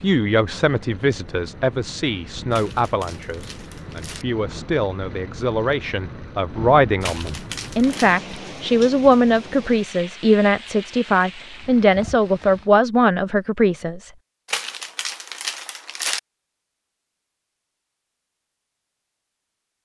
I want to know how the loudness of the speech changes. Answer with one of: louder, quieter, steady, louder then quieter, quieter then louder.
louder.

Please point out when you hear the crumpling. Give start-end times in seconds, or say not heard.
2.5-4.2, 7.0-8.2, 14.4-16.2.